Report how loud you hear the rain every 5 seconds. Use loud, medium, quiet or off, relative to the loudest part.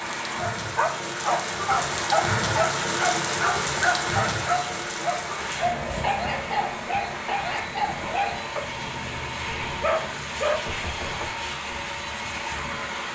loud, medium, quiet.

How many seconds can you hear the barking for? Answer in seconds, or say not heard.
10 s.